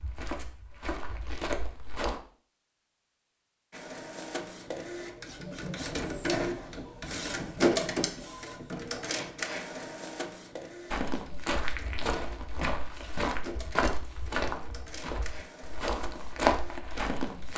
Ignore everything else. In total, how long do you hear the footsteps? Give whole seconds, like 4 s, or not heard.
9 s.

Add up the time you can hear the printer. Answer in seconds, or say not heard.
14 s.